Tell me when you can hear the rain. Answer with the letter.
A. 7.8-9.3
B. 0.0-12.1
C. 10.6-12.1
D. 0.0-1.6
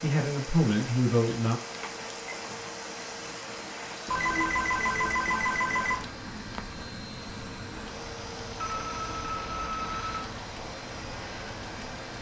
B.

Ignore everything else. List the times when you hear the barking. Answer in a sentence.
You can't hear the barking here.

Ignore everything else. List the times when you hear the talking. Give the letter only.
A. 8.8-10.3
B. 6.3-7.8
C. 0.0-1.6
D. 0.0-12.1
C.